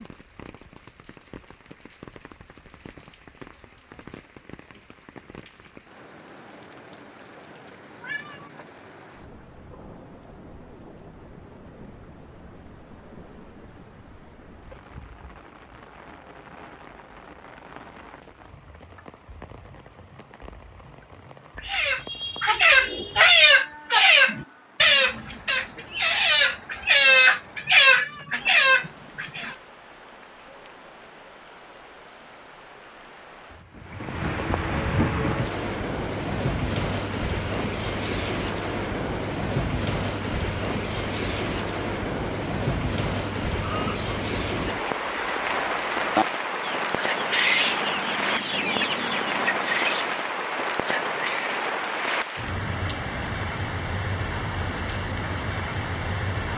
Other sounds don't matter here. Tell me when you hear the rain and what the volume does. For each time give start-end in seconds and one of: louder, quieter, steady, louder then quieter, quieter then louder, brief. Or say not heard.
0.0-56.5 louder.